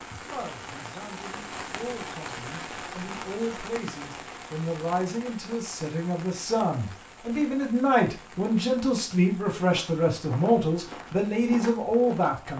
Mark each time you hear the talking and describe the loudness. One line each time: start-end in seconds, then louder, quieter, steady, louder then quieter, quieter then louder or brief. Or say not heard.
0.3-12.5 louder.